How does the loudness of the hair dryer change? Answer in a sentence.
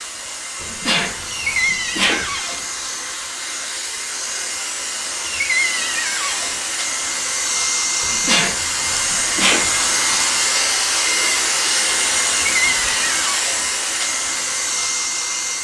The volume of the hair dryer goes up.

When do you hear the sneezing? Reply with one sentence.
The sneezing can be heard from 0.6 to 2.2 s and from 8.0 to 9.7 s.